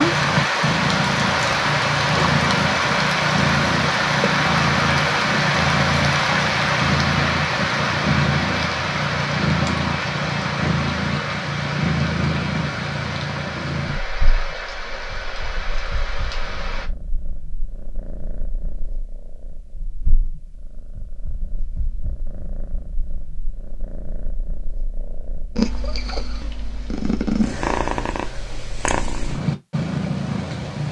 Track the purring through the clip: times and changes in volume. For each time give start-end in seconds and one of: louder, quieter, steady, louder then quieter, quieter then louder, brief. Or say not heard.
0.0-30.8 quieter then louder.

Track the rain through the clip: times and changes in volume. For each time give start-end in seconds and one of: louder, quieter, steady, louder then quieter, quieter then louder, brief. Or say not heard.
0.0-16.9 quieter.